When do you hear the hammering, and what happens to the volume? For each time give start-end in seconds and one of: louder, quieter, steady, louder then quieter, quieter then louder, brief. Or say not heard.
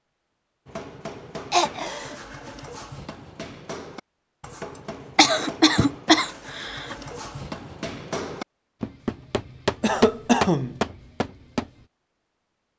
0.7-11.8 louder.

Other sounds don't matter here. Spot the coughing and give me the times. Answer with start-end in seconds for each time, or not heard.
1.5-2.1, 4.8-7.0, 9.8-10.8.